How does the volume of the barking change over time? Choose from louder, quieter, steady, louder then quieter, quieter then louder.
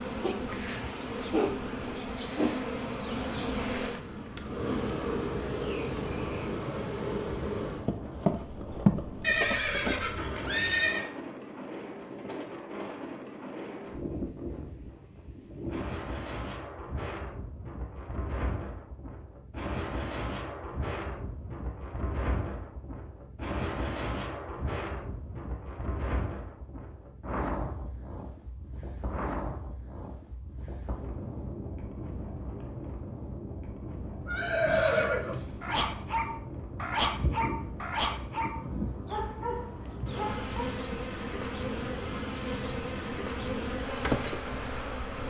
quieter.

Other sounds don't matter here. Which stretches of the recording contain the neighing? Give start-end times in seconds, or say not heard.
9.2-11.1, 34.2-35.4.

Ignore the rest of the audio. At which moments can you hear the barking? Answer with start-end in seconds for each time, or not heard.
35.6-40.5.